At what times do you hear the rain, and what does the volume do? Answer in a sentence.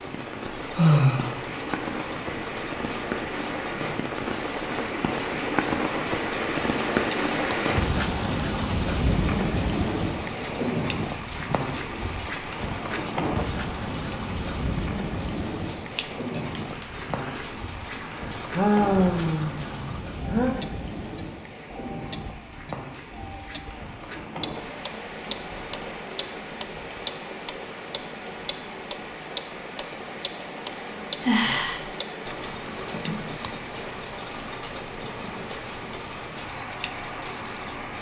The rain can be heard from 0.0 to 37.9 s, getting quieter.